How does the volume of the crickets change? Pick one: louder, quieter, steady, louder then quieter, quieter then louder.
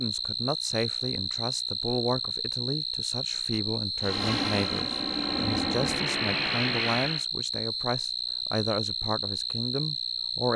steady.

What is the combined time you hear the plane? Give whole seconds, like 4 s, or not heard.
3 s.